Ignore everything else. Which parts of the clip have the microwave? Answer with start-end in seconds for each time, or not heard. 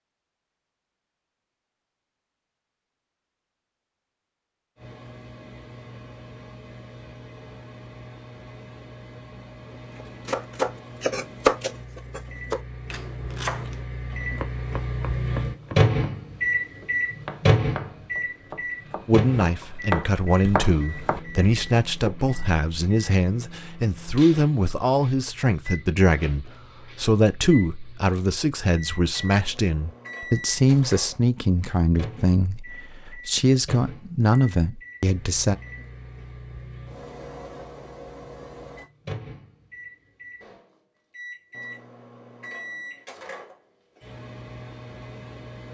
4.8-45.6.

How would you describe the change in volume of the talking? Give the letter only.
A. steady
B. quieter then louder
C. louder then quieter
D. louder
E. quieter
A.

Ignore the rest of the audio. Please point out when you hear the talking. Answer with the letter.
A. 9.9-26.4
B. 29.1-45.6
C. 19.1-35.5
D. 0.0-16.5
C.